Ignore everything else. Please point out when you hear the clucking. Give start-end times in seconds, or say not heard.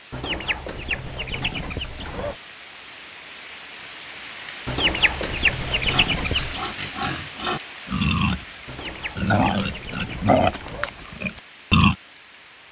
0.1-2.4, 4.7-6.7, 8.7-10.9.